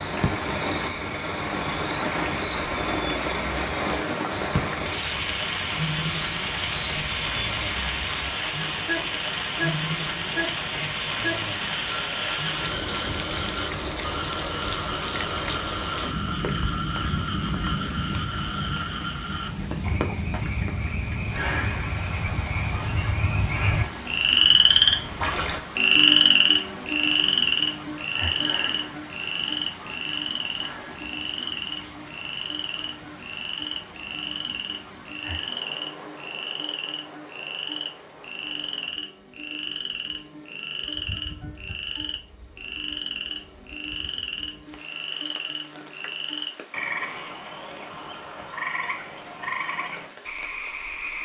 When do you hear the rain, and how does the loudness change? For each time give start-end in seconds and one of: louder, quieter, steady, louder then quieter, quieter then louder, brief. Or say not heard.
0.0-51.2 quieter.